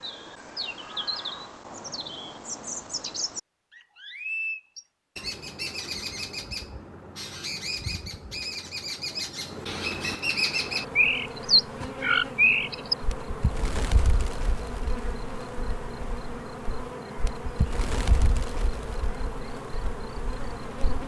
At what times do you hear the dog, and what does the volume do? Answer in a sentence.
You can't hear the dog here.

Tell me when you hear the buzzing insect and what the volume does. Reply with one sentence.
You can hear the buzzing insect from 10.4 to 21.0 s, at a steady volume.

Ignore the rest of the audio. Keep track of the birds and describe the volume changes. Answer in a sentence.
The volume of the birds goes up, then down.